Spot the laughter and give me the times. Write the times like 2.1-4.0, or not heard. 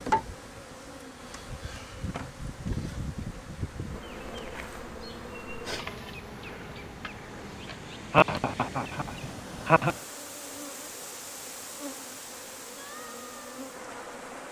7.7-9.9.